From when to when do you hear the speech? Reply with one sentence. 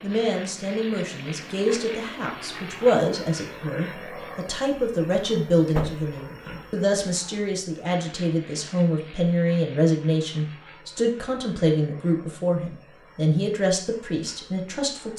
You can hear the speech from 0.0 to 15.1 s.